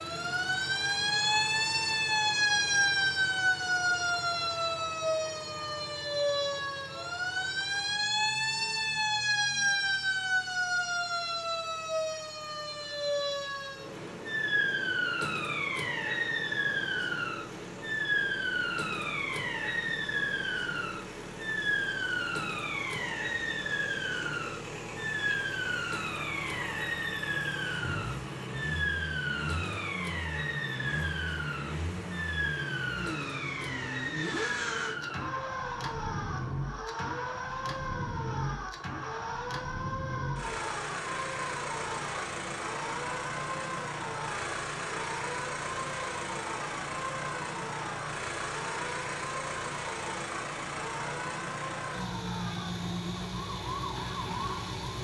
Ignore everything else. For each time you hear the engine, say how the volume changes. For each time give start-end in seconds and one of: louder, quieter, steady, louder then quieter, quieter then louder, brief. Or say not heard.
0.0-54.9 louder.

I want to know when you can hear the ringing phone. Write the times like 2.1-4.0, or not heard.
not heard.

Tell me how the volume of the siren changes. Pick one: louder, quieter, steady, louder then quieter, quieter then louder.
quieter.